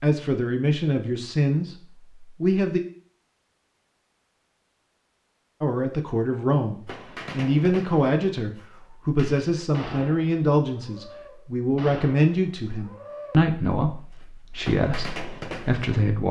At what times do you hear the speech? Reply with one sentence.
You can hear the speech from 0.0 to 2.8 s and from 5.6 to 16.2 s.